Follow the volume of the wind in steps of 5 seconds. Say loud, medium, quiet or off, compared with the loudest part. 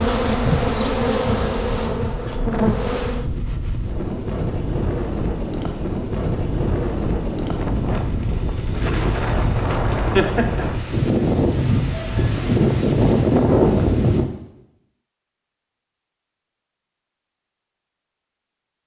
medium, medium, loud, off.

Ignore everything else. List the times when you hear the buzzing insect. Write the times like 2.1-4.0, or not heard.
0.0-3.2.